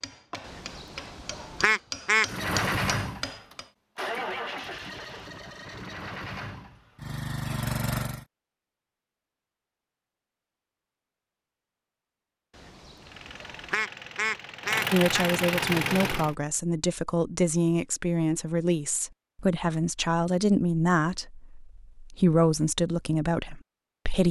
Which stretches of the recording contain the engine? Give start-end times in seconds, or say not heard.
2.2-8.2, 13.0-16.4.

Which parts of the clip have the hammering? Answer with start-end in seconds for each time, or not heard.
0.0-3.7.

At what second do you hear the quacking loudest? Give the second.
2 s.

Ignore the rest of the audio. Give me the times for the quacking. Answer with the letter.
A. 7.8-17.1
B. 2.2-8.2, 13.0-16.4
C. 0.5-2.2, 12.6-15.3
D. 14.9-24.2
C.